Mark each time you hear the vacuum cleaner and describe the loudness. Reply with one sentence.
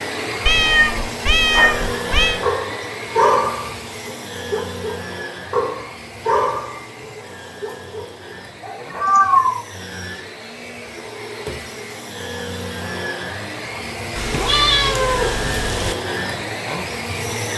The vacuum cleaner can be heard from 0.0 to 17.5 s, getting quieter then louder.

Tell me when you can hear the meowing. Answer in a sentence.
The meowing can be heard from 0.5 to 2.4 s, from 8.9 to 9.7 s and from 14.2 to 15.9 s.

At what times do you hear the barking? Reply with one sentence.
You can hear the barking from 1.5 to 3.7 s, from 4.5 to 6.8 s and from 7.6 to 9.1 s.